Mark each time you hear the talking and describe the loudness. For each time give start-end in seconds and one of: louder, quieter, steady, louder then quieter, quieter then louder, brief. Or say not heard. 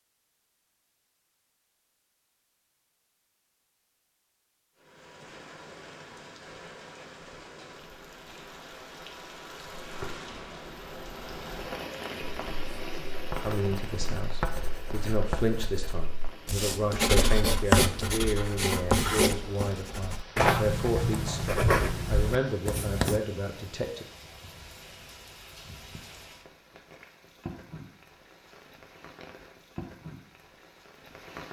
13.4-24.1 steady.